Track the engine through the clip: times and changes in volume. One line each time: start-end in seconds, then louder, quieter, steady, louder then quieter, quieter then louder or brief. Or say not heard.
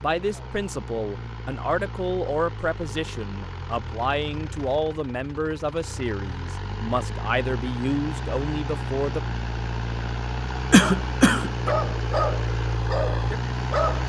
0.0-14.0 louder.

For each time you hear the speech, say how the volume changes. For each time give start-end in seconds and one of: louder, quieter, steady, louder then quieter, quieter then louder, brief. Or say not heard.
0.0-9.2 steady.